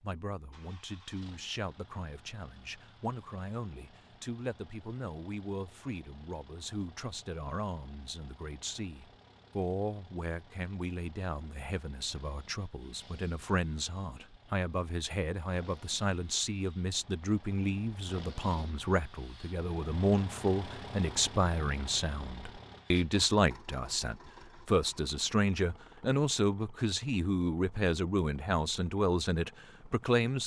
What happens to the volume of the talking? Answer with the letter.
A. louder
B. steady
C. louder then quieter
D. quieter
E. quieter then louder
A.